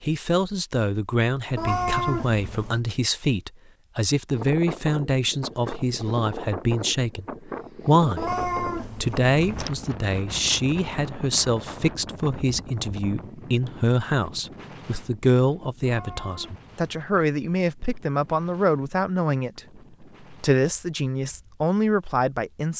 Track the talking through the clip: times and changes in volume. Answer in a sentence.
You can hear the talking from 0.0 to 8.3 s, at a steady volume; and from 8.9 to 22.7 s, at a steady volume.